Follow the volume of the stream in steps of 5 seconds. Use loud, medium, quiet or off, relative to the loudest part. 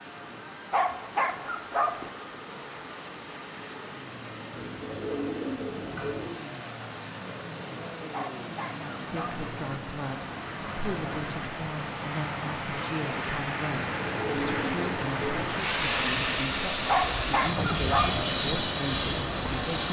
medium, medium, loud, loud.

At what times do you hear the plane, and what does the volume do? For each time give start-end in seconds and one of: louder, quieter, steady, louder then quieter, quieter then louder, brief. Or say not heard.
0.0-19.8 louder.